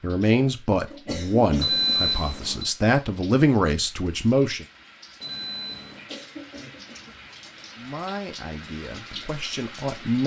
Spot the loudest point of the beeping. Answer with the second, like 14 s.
2 s.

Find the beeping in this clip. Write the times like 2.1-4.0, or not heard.
1.6-2.8, 5.2-6.1.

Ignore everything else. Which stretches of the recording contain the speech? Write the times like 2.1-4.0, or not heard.
0.0-4.7, 7.8-10.2.